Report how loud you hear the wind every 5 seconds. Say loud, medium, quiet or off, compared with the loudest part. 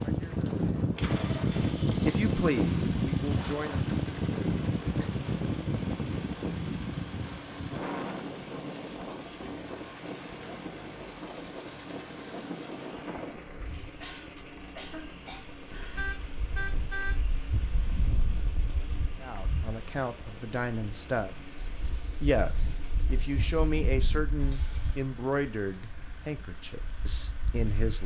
loud, medium, quiet, quiet, quiet, quiet.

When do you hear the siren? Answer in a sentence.
The siren can't be heard in this clip.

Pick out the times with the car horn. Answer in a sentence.
The car horn can be heard from 15.9 to 17.1 s.